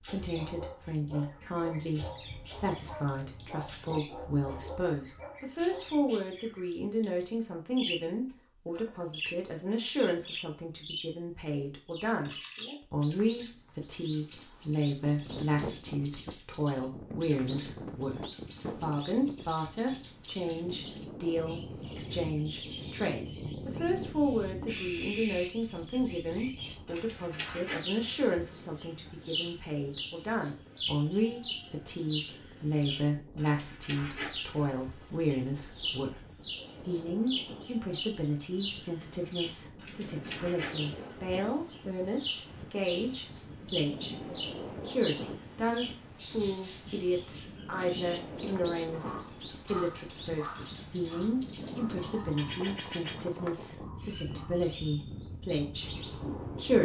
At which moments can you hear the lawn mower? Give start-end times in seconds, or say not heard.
not heard.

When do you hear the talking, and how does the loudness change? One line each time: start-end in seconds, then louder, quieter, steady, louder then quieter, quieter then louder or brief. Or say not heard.
0.0-56.8 steady.